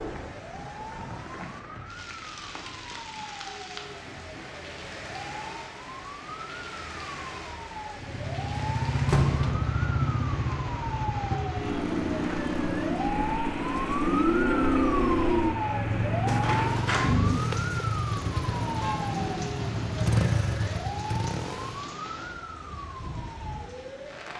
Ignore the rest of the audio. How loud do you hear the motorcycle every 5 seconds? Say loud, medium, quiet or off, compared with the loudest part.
off, loud, loud, loud, loud.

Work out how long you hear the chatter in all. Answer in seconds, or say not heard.
not heard.